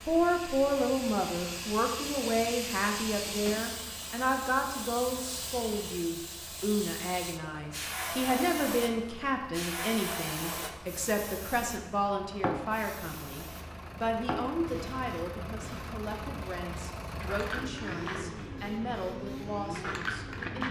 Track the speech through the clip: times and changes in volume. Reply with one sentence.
You can hear the speech from 0.0 to 20.6 s, getting quieter.